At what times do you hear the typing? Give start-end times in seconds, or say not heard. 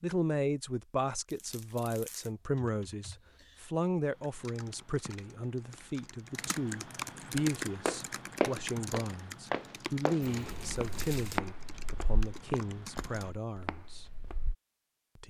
2.4-13.3.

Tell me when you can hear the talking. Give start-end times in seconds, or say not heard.
0.0-14.1.